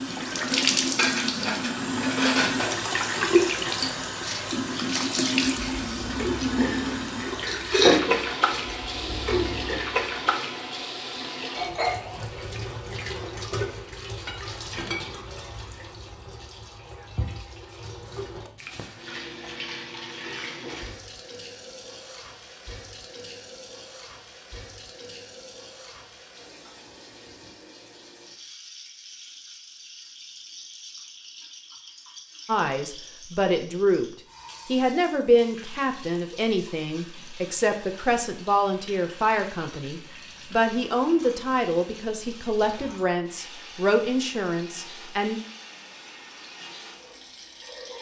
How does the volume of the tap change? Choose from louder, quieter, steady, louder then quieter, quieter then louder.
quieter.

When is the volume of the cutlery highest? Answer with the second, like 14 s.
8 s.